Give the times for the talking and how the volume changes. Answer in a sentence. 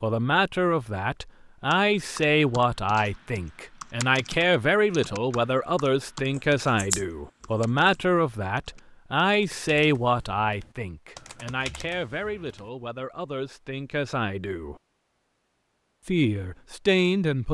You can hear the talking from 0.0 to 14.8 s, getting quieter; and briefly from 16.1 to 17.4 s.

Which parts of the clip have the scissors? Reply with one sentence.
The scissors can be heard from 6.3 to 8.1 s.